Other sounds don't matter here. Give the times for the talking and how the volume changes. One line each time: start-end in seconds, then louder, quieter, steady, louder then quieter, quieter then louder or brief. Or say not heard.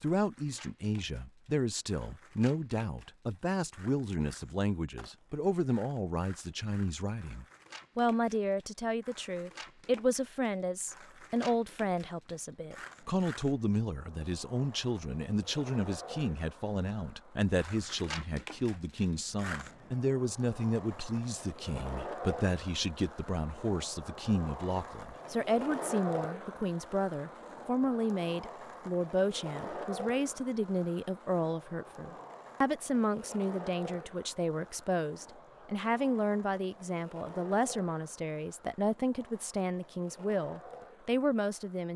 0.0-41.9 steady.